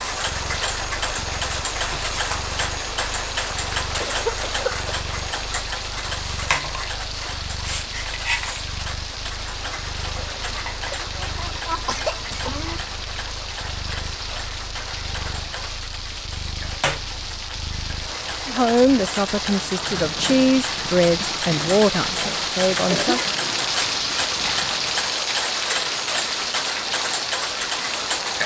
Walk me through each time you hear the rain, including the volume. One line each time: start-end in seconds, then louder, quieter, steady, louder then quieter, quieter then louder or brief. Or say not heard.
0.0-28.4 louder.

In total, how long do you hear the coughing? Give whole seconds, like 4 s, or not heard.
4 s.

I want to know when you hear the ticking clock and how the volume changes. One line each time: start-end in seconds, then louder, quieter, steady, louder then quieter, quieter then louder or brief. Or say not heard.
0.0-28.4 quieter then louder.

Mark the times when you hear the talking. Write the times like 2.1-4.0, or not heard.
18.4-23.2.